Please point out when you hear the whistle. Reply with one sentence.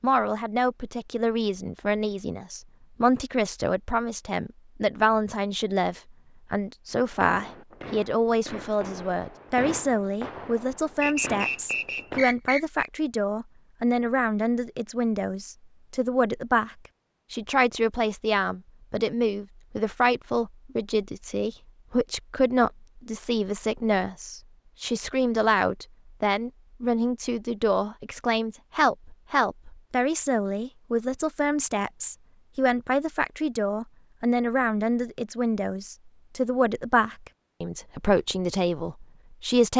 The whistle can be heard from 11.0 to 12.8 s.